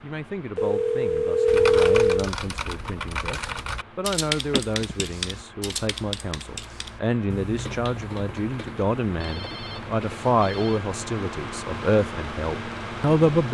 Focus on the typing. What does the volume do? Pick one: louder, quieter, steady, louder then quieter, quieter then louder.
quieter.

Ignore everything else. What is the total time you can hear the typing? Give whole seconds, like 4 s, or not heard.
9 s.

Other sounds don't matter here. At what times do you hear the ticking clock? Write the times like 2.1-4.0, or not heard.
not heard.